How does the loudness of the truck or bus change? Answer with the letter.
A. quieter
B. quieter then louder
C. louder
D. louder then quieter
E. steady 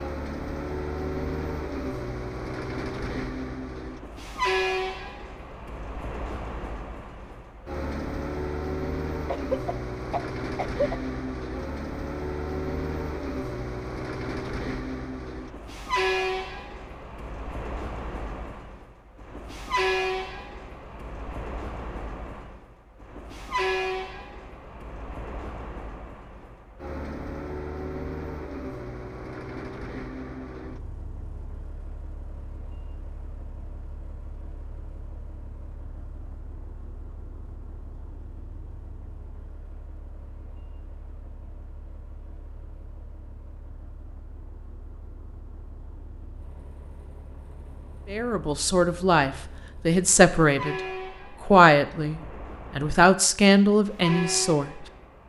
B.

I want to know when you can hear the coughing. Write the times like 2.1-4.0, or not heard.
9.2-11.0.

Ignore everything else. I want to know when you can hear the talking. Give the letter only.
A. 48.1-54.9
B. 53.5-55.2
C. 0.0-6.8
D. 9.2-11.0
A.